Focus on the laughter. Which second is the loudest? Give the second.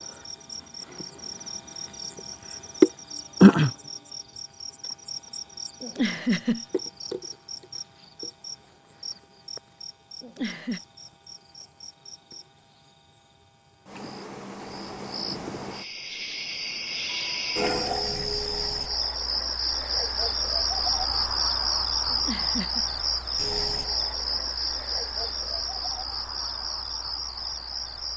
6 s.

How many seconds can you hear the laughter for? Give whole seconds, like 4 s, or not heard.
2 s.